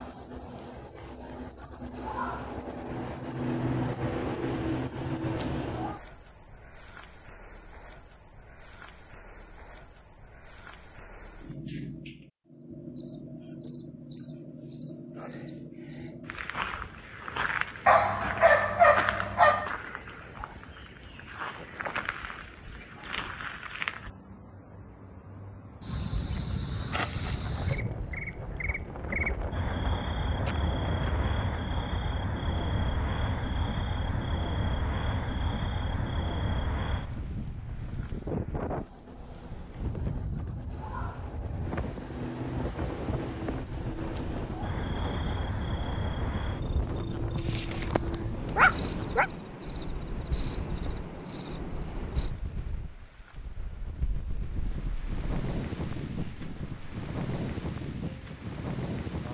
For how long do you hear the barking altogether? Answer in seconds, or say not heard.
4 s.